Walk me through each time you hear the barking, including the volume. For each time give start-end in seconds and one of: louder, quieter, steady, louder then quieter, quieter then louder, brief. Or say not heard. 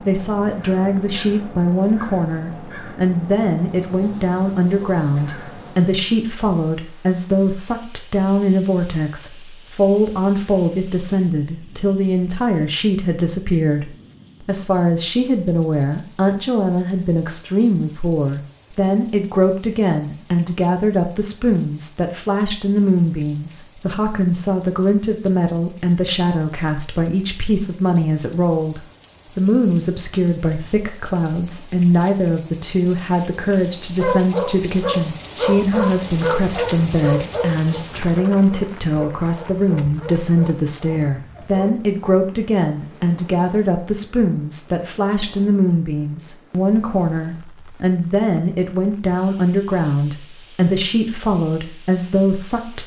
34.0-41.6 quieter.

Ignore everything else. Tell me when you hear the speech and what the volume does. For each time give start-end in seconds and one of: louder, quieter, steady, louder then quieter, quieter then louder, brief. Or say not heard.
0.0-52.8 steady.